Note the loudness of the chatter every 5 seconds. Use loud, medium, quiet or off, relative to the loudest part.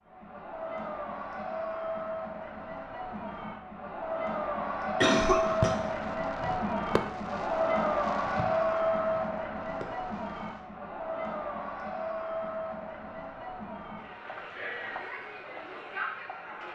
medium, loud, medium, medium.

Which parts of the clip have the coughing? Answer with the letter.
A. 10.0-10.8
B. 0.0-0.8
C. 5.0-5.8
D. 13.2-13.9
C.